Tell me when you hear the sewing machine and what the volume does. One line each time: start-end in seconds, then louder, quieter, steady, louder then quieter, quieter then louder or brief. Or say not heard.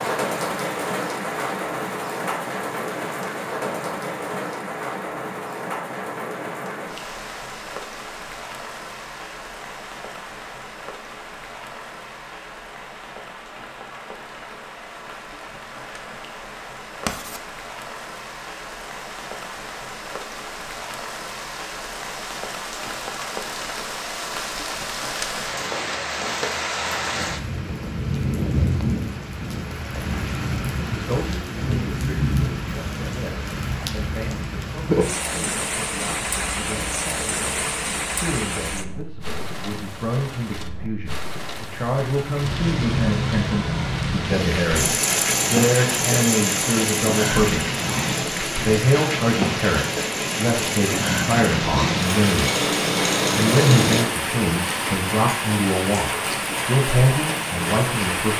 44.8-54.0 quieter then louder.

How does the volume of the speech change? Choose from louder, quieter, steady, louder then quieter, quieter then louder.
louder.